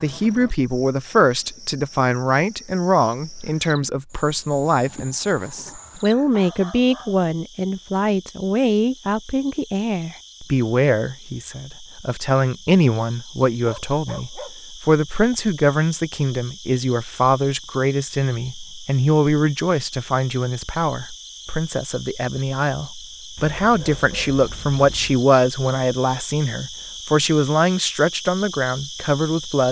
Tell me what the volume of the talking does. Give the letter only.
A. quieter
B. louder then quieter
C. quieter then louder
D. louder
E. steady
E.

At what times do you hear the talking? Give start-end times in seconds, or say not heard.
0.0-29.6.